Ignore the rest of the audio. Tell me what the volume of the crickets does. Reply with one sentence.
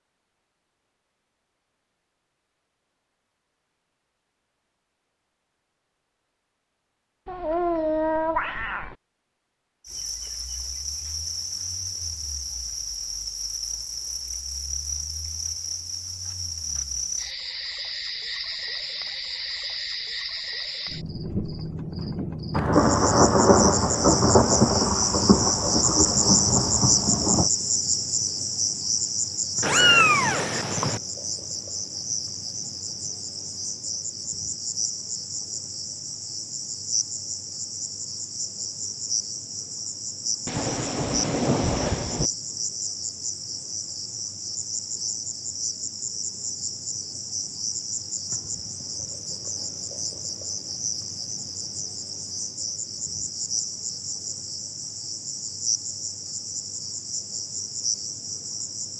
The volume of the crickets goes up, then down.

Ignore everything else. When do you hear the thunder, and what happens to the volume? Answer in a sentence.
The thunder can be heard from 22.5 to 27.5 s, getting quieter; and briefly from 40.5 to 42.3 s.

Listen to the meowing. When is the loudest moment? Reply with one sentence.
The volume of the meowing peaks at 30 seconds.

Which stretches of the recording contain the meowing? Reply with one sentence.
You can hear the meowing from 7.2 to 8.9 s and from 29.6 to 31.0 s.